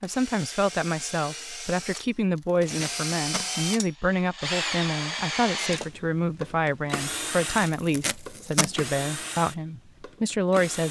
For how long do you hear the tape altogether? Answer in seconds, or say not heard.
2 s.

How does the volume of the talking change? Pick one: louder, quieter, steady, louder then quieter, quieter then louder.
steady.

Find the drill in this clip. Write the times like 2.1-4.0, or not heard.
0.0-10.8.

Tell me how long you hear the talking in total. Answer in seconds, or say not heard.
11 s.